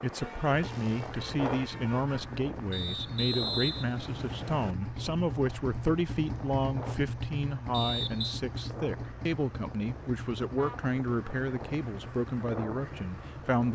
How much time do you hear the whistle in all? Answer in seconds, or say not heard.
3 s.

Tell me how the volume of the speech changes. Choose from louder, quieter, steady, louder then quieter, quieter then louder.
steady.